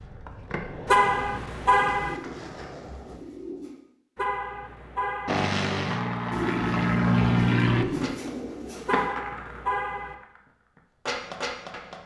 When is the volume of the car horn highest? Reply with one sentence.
The loudest moment of the car horn is at 1 second.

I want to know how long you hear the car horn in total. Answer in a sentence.
The car horn can be heard for 4 seconds in total.